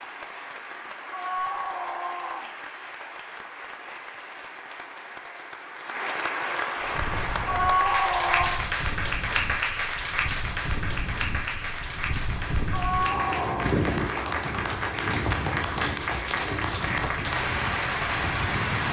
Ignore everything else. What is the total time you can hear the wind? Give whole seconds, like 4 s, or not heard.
12 s.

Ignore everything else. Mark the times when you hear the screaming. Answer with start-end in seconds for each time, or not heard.
1.1-2.5, 7.5-8.7, 12.7-13.7.